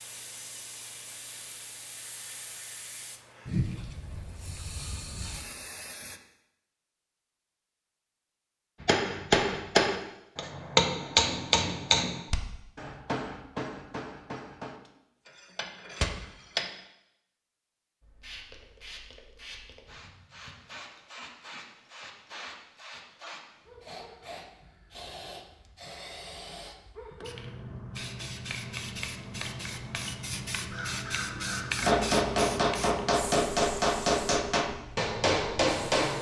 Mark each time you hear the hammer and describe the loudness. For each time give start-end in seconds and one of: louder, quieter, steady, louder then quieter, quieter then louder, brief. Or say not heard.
8.8-16.7 quieter
31.8-36.1 steady.